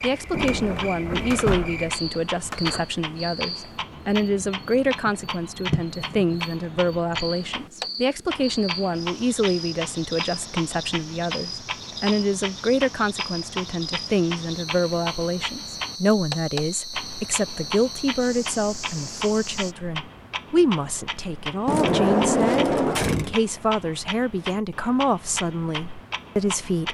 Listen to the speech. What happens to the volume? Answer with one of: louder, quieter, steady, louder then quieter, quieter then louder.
steady.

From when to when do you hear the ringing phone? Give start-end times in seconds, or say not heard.
not heard.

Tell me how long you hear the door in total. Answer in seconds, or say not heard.
4 s.